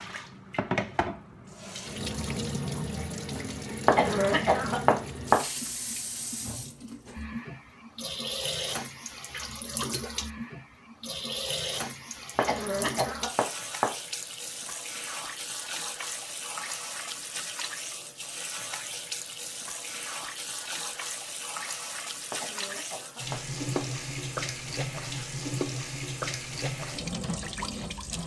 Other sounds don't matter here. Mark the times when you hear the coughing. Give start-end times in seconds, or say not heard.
3.9-5.3, 12.3-13.8, 22.3-23.8.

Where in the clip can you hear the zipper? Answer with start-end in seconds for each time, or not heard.
not heard.